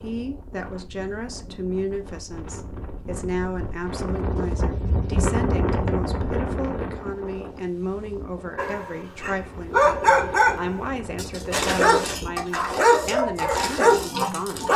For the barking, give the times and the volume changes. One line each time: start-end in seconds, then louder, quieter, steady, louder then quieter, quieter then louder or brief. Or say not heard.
8.6-14.7 steady.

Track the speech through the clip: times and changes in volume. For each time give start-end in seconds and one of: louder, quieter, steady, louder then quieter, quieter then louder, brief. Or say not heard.
0.0-14.7 steady.